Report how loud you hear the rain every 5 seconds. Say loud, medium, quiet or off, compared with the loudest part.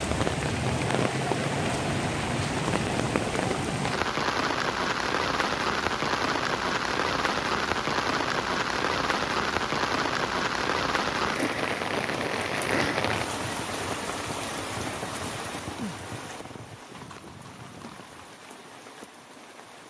loud, loud, loud, quiet.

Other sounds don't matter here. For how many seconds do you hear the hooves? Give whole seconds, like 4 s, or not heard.
5 s.